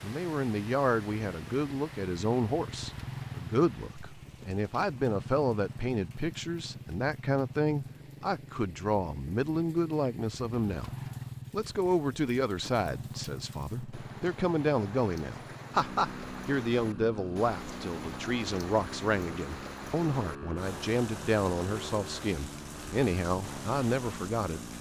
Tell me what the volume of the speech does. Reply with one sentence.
The loudness of the speech stays about the same.